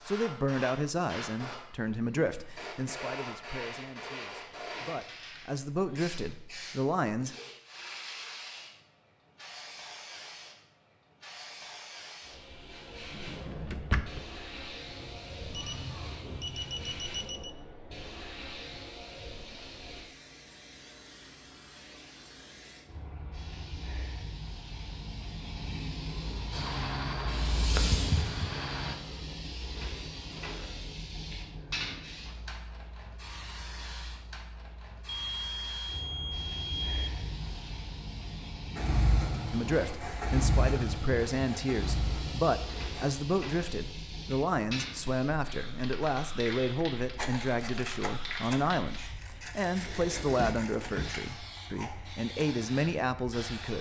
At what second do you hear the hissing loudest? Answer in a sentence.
The volume of the hissing peaks at 28 seconds.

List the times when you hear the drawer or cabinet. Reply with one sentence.
The drawer or cabinet can be heard from 13.1 to 14.2 s and from 49.8 to 51.1 s.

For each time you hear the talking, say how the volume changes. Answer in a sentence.
The talking can be heard from 0.1 to 7.3 s, getting quieter then louder; and from 39.5 to 53.7 s, at a steady volume.